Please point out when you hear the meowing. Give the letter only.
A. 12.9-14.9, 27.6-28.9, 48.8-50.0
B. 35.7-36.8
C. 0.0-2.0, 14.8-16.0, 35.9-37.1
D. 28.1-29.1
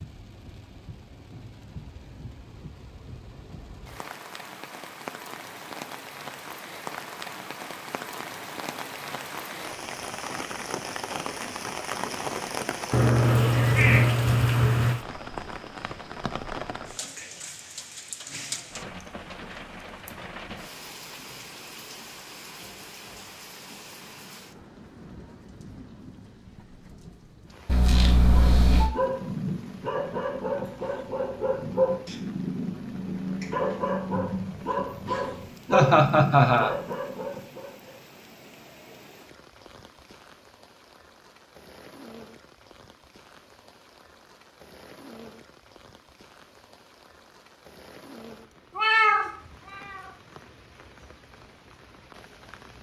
A.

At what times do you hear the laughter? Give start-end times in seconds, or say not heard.
35.7-36.8.